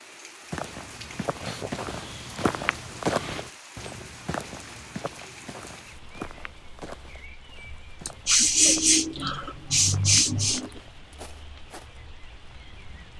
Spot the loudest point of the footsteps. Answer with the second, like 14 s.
3 s.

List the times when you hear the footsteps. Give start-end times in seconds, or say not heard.
0.5-12.1.